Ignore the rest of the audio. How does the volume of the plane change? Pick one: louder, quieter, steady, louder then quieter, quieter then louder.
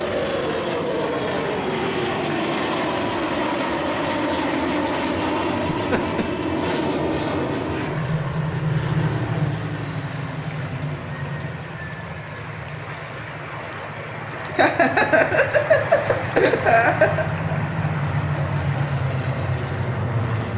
quieter then louder.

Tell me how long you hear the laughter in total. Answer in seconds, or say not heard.
3 s.